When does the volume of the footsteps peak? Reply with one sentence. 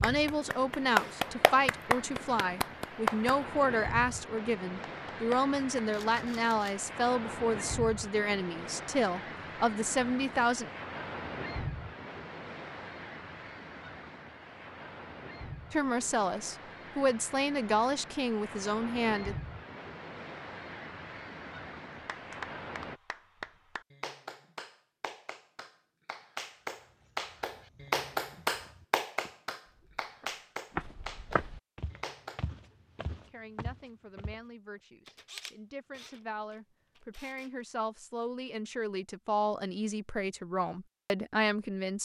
The loudest moment of the footsteps is at 31 seconds.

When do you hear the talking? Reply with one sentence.
The talking can be heard from 0.0 to 10.7 s, from 15.7 to 19.4 s and from 33.2 to 42.0 s.